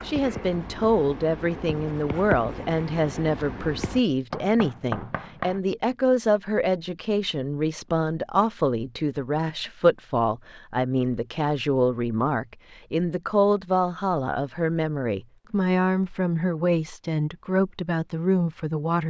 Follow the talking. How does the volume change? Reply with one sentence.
The loudness of the talking stays about the same.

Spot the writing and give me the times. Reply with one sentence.
The writing can be heard from 0.0 to 5.6 s.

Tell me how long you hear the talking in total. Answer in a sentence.
You can hear the talking for 19 seconds altogether.